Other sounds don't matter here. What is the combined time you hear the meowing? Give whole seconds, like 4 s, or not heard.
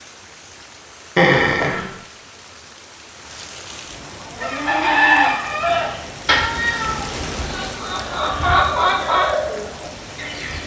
2 s.